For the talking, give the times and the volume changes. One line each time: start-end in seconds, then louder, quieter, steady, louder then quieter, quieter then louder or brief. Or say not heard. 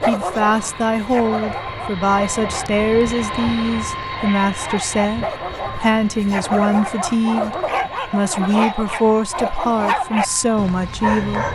0.0-11.4 steady.